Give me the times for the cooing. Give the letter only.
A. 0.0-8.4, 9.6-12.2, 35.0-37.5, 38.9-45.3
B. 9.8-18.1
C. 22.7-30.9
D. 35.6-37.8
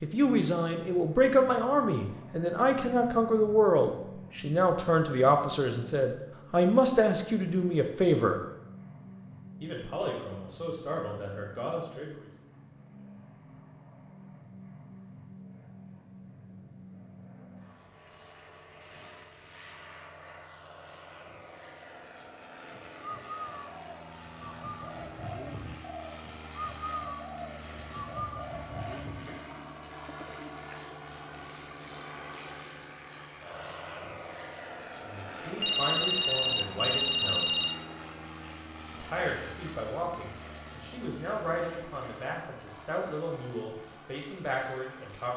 C.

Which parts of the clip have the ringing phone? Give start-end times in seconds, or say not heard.
35.6-37.8.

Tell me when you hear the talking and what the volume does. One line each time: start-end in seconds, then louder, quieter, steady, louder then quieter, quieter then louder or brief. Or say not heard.
0.0-8.4 steady
9.6-12.2 brief
35.0-37.5 brief
38.9-45.3 steady.